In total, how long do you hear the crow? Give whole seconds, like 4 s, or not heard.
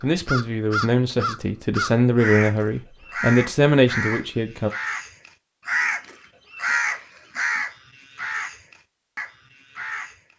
10 s.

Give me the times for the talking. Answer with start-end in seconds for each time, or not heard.
0.0-4.7.